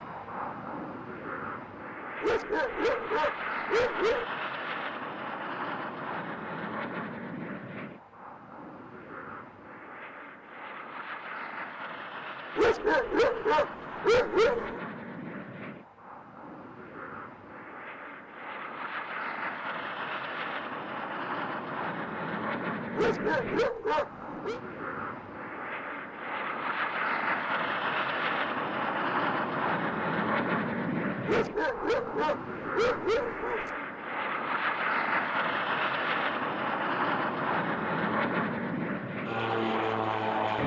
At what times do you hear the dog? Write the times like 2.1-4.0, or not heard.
2.2-4.2, 12.6-14.8, 22.9-24.6, 31.2-33.7.